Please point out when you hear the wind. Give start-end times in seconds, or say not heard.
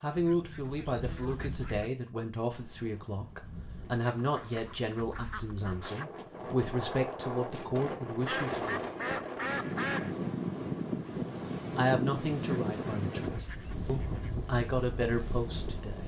2.5-16.0.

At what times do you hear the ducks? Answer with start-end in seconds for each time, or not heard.
0.1-1.9, 4.0-6.0, 8.2-10.2, 12.5-14.3.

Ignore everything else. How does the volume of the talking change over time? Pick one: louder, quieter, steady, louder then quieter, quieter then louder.
steady.